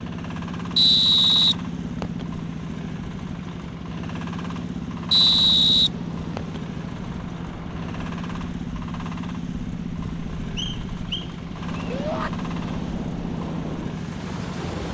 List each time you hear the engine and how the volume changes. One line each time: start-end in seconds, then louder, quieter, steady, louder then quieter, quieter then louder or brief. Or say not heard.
0.0-14.8 steady.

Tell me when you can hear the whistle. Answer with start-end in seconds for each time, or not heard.
0.8-2.2, 5.1-6.6, 10.6-11.9.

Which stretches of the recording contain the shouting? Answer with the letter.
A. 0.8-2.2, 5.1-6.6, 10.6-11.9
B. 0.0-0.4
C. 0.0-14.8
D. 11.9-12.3
D.